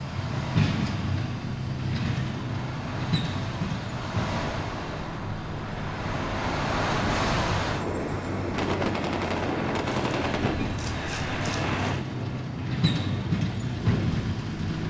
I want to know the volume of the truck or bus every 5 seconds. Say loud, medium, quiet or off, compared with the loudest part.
loud, medium, loud.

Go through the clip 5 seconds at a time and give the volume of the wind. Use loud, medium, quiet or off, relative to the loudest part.
medium, loud, medium.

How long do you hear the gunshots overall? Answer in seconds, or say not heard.
2 s.